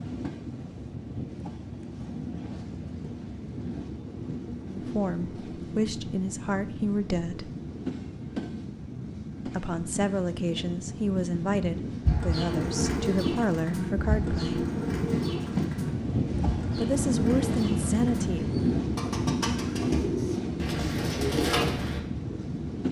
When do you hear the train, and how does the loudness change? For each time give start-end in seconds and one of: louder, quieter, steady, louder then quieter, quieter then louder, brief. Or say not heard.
0.0-22.8 louder.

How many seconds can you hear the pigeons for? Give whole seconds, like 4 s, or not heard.
10 s.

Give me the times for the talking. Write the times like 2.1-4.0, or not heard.
4.7-7.5, 9.4-14.7, 16.6-18.5.